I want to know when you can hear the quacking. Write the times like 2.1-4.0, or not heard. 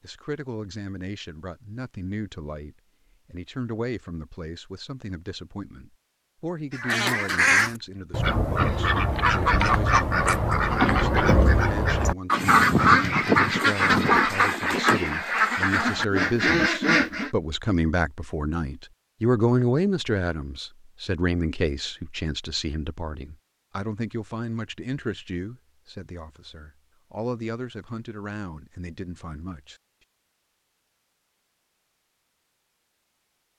6.8-17.3.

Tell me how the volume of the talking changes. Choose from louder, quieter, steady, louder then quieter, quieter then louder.
louder then quieter.